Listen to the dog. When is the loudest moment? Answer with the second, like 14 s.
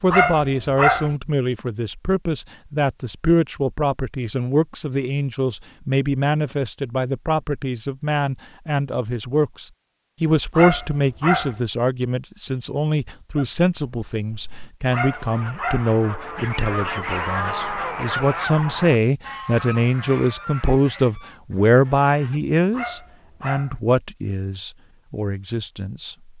1 s.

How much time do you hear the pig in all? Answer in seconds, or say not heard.
not heard.